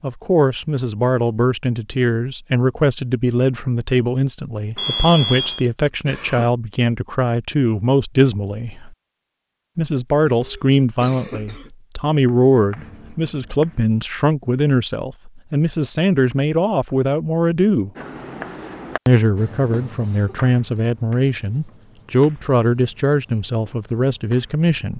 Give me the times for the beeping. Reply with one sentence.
You can hear the beeping from 4.8 to 5.7 s.